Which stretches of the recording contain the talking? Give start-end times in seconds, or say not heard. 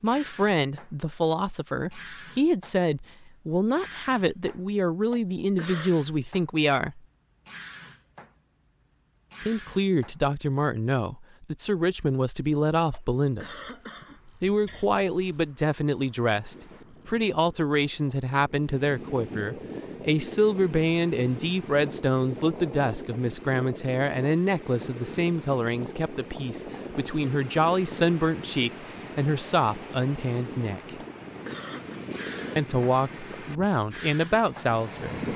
0.0-7.0, 9.4-13.6, 14.4-30.9, 32.5-35.3.